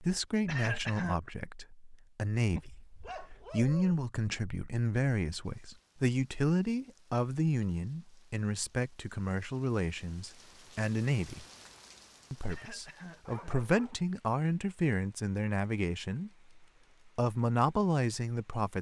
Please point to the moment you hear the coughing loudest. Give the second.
1 s.